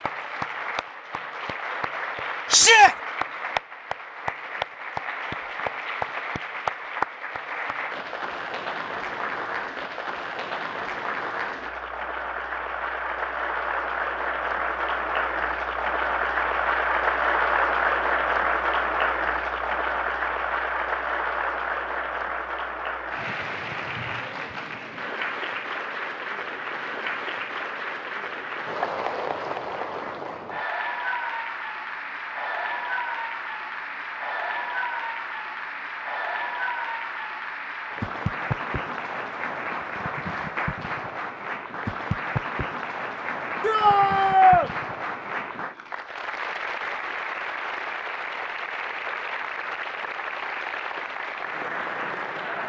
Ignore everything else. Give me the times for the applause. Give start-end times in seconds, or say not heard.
0.0-52.6.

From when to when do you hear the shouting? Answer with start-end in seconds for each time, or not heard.
2.5-3.0, 43.6-44.7.